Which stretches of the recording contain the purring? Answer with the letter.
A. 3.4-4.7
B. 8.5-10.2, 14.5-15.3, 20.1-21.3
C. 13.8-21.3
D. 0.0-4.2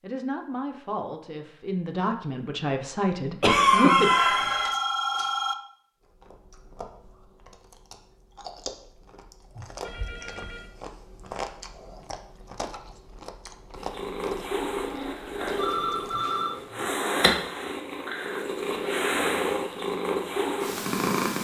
C.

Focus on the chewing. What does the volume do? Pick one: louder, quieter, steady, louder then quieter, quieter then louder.
louder then quieter.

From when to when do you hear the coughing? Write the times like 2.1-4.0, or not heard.
3.4-4.7.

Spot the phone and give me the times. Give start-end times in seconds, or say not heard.
3.9-5.5, 9.8-10.7, 15.5-16.7.